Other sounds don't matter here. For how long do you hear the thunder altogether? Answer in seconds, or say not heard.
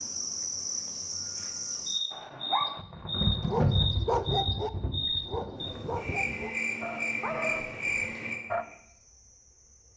4 s.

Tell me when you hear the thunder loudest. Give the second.
4 s.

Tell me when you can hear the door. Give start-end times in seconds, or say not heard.
not heard.